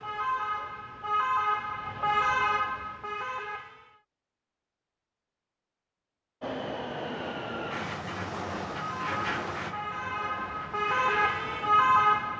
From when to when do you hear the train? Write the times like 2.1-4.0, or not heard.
6.4-12.3.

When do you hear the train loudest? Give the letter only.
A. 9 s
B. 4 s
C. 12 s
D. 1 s
A.